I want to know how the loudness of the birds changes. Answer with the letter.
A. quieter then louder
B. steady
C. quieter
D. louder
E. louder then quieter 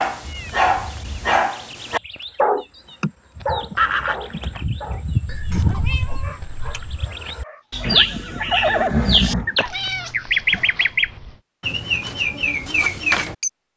D.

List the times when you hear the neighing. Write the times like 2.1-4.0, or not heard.
3.8-4.7, 7.8-9.7.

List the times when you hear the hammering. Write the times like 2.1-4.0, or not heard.
not heard.